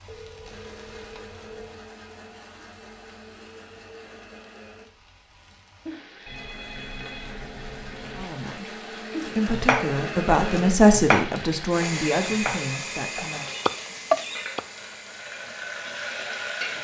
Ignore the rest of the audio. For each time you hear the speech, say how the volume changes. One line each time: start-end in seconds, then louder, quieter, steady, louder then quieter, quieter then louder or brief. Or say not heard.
8.1-13.4 louder then quieter.